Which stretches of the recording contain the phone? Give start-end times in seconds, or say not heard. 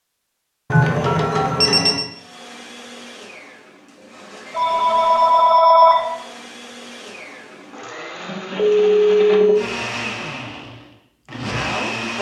0.7-2.0, 4.5-6.2, 8.6-9.6.